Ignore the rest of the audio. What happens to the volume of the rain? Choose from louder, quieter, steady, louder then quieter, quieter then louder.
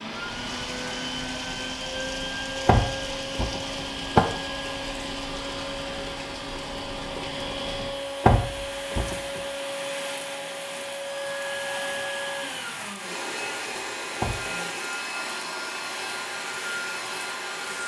steady.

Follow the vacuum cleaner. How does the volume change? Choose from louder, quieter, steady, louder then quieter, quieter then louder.
steady.